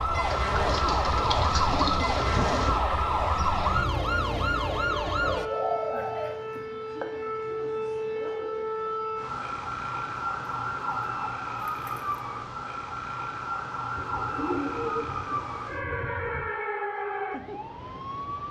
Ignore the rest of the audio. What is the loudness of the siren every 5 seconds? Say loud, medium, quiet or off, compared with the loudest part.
loud, medium, medium, medium.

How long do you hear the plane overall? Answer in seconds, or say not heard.
not heard.